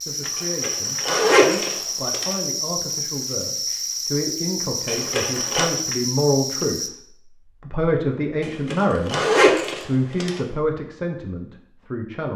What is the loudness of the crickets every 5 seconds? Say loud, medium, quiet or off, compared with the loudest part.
loud, loud, off.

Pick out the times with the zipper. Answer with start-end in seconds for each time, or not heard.
0.3-2.4, 4.8-5.7, 8.4-10.4.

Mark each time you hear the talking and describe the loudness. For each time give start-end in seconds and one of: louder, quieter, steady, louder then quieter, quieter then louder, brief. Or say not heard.
0.0-6.8 louder
7.6-12.3 quieter.